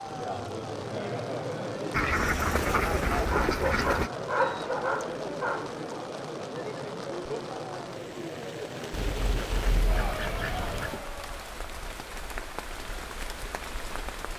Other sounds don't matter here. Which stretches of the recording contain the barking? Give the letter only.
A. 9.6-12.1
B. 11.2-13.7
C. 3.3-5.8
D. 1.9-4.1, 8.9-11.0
C.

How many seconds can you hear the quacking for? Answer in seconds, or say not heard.
4 s.